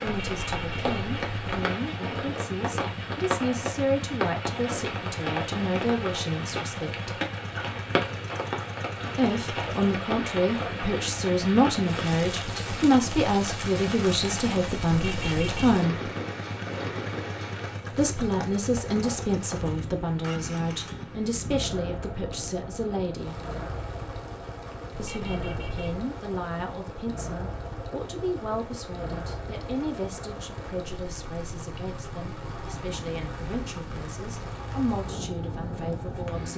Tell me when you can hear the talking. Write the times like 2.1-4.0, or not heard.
0.0-7.2, 9.2-16.1, 17.9-23.4, 24.9-36.5.